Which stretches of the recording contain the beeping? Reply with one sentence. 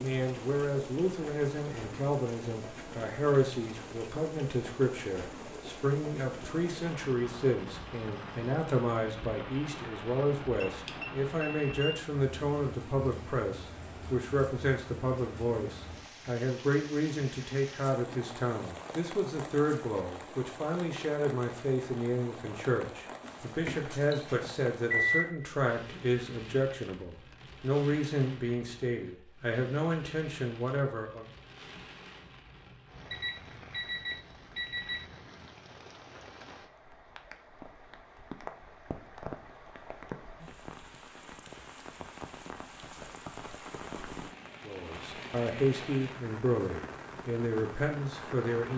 The beeping can be heard from 10.6 to 11.9 s, from 23.2 to 25.2 s and from 33.1 to 35.0 s.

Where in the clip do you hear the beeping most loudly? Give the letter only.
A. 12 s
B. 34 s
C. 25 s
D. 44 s
C.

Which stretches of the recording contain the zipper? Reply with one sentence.
You can't hear the zipper here.